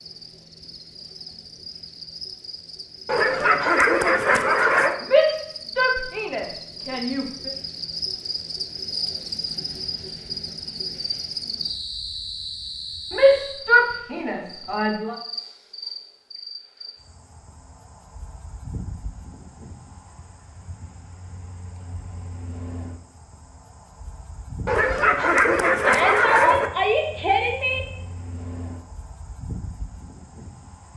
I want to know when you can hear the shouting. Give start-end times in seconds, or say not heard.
5.0-7.5, 13.1-15.2, 25.8-27.8.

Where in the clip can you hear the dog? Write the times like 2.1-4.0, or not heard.
3.0-5.0, 24.6-26.7.